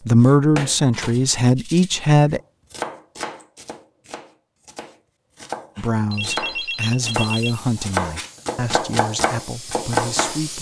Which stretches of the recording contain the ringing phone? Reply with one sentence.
The ringing phone can be heard from 0.9 to 1.3 s and from 6.1 to 7.6 s.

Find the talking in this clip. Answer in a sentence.
The talking can be heard from 0.1 to 2.4 s and from 5.8 to 10.5 s.